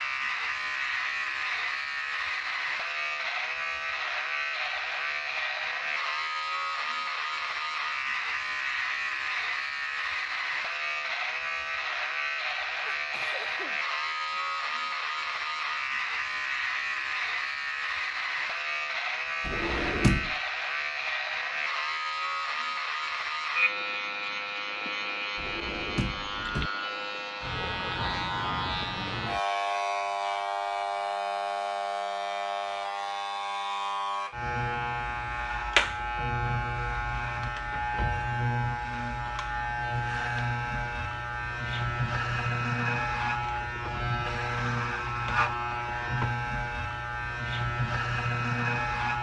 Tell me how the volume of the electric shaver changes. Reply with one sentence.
The volume of the electric shaver stays about the same.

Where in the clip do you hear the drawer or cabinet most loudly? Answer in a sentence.
The loudest moment of the drawer or cabinet is at 20 seconds.